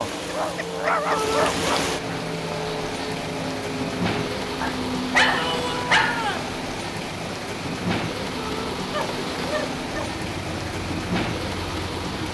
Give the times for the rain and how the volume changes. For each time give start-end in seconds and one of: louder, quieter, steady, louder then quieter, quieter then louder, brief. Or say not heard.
0.0-12.2 steady.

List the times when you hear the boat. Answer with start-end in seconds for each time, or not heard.
0.0-12.2.